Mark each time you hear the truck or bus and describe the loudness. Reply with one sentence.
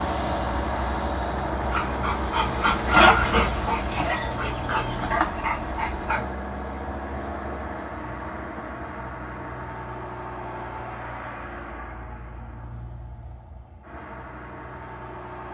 The truck or bus can be heard from 0.0 to 15.4 s, getting quieter.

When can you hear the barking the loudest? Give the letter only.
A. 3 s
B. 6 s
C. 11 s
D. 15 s
A.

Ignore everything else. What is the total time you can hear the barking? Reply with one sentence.
You can hear the barking for 5 seconds altogether.